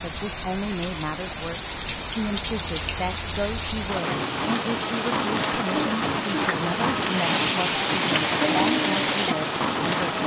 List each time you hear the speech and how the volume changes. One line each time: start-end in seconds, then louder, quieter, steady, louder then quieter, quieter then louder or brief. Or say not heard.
0.0-10.2 steady.